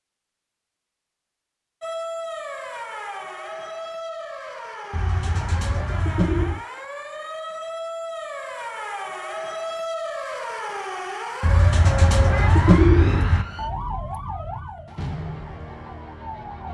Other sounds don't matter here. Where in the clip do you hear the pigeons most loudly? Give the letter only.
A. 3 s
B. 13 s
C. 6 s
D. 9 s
B.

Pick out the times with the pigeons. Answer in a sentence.
The pigeons can be heard from 4.9 to 6.7 s and from 11.4 to 13.4 s.